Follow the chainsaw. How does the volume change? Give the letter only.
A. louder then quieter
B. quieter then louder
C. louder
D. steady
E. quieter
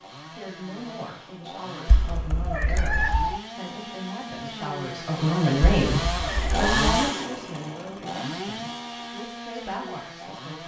A.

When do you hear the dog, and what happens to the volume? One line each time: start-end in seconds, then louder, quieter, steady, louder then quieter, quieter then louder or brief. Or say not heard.
not heard.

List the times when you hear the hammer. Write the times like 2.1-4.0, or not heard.
not heard.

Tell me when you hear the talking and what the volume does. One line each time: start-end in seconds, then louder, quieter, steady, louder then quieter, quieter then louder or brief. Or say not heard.
0.3-10.6 louder then quieter.